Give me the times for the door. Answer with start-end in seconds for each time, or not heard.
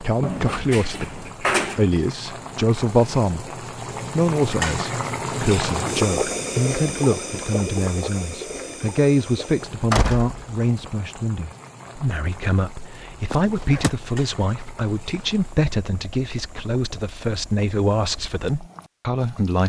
0.2-1.8, 9.9-10.9, 13.3-13.9.